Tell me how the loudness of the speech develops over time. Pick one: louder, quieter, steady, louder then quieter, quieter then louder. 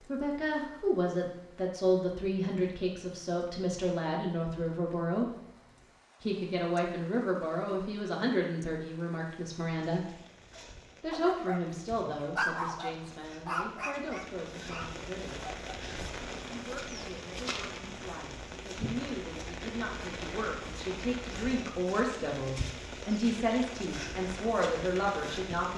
quieter then louder.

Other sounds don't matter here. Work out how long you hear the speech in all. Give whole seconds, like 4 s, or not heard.
23 s.